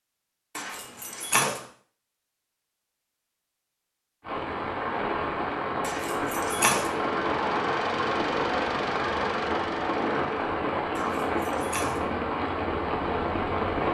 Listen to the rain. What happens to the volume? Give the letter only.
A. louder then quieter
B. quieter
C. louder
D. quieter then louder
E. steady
E.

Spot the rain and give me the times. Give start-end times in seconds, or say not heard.
4.2-13.8.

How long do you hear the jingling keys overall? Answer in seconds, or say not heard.
3 s.